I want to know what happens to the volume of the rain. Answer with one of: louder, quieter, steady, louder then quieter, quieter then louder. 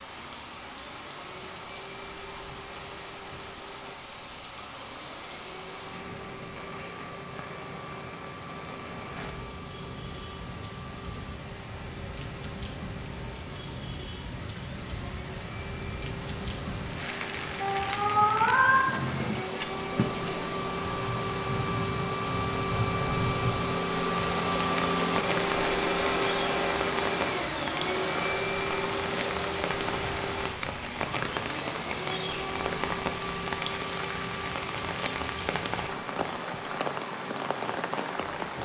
louder.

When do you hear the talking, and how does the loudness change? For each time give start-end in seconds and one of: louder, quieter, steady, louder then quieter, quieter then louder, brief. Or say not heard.
not heard.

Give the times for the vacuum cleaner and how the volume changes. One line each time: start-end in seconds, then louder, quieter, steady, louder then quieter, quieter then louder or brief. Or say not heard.
0.1-38.6 louder then quieter.